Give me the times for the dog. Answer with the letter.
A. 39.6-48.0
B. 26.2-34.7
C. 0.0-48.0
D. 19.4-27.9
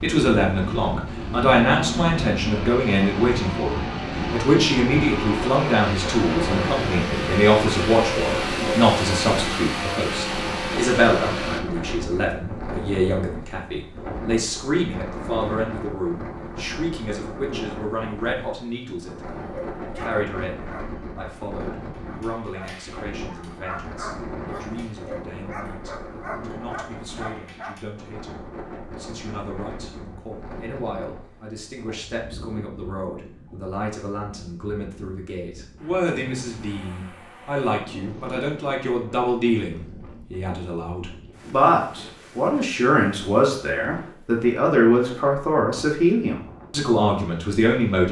D.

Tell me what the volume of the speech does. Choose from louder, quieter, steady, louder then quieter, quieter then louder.
quieter then louder.